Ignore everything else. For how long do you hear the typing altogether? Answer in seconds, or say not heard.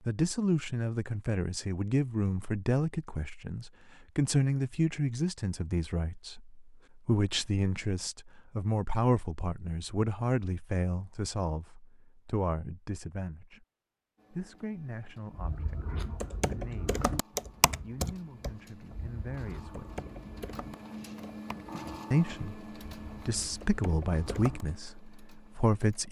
9 s.